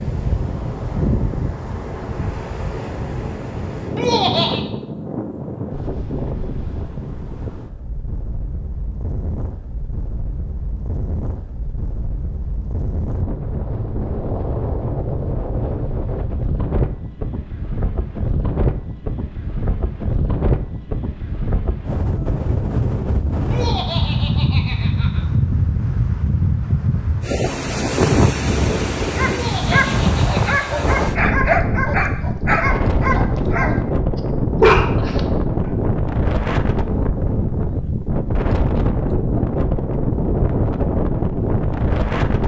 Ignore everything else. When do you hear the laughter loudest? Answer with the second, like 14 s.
4 s.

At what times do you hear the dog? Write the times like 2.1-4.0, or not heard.
29.1-35.8.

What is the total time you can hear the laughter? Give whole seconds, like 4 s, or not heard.
4 s.